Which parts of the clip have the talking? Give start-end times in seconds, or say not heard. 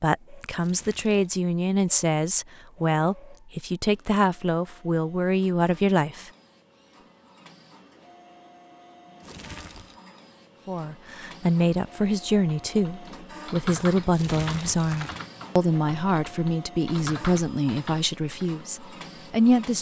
0.0-6.3, 10.7-19.7.